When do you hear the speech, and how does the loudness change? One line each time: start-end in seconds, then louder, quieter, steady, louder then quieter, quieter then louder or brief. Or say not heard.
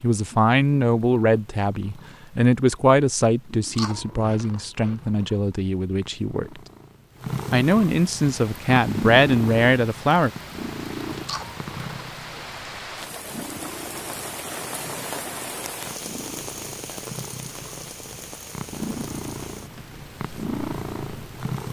0.0-6.6 quieter
7.5-10.3 brief.